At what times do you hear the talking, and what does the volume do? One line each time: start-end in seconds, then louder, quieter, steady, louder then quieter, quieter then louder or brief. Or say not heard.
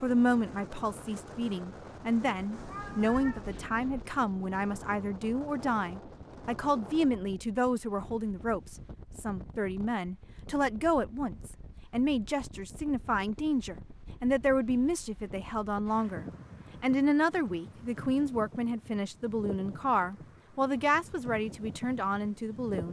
0.0-22.8 steady.